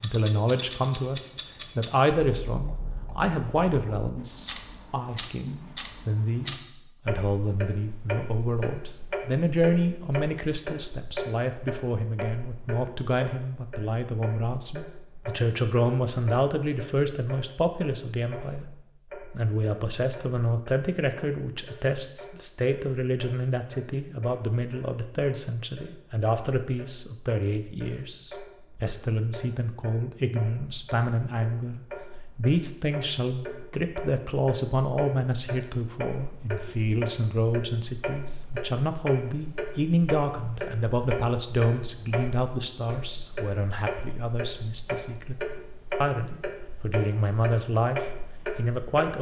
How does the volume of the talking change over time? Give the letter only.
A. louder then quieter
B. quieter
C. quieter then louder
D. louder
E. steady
E.